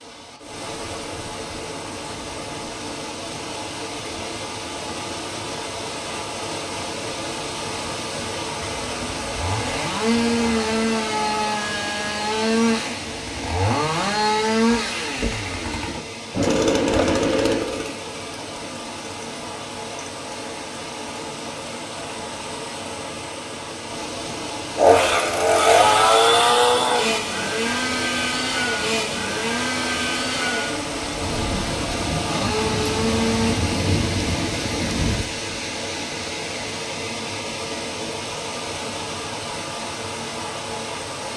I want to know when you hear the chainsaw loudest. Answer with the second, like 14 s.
26 s.